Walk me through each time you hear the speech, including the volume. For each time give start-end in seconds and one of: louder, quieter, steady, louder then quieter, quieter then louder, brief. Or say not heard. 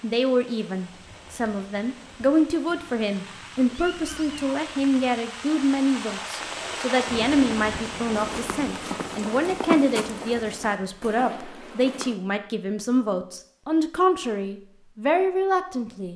0.0-16.1 steady.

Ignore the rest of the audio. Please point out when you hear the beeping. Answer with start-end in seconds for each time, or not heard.
not heard.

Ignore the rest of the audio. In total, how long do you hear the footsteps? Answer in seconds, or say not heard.
4 s.